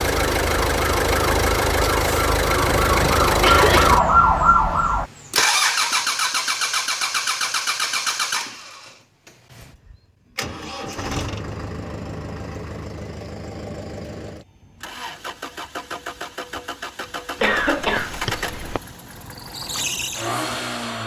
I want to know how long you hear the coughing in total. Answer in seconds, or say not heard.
3 s.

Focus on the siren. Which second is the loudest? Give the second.
4 s.